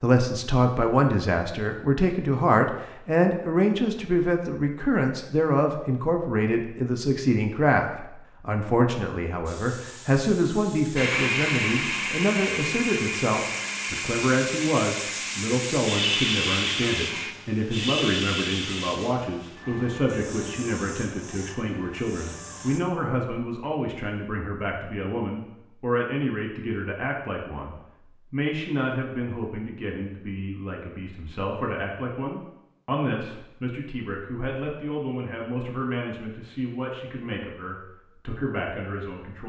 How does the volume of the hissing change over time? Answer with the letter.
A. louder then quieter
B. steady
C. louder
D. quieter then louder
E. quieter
A.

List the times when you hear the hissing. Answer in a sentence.
You can hear the hissing from 9.4 to 22.8 s.